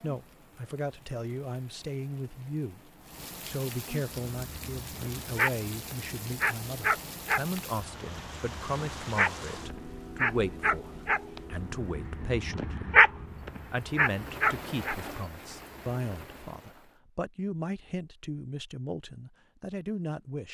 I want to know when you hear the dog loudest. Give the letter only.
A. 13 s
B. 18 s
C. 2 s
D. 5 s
A.